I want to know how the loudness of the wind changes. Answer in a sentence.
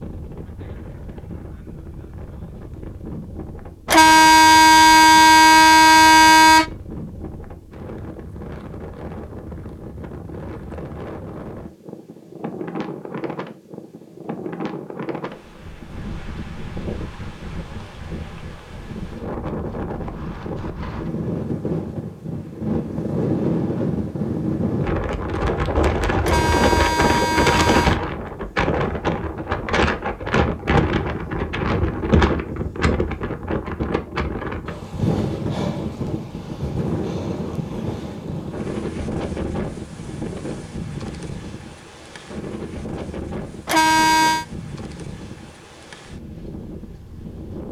The loudness of the wind goes up, then down.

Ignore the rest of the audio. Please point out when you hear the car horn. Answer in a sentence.
The car horn can be heard from 3.9 to 6.7 s, from 26.2 to 28.0 s and from 43.6 to 44.5 s.